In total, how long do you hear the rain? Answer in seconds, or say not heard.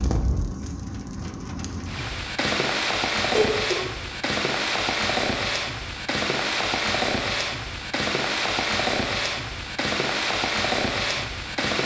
12 s.